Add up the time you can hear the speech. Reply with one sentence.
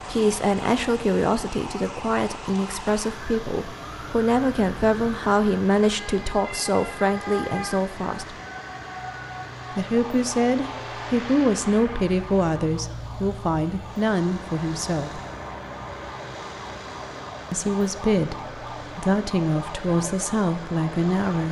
The speech can be heard for 18 seconds in total.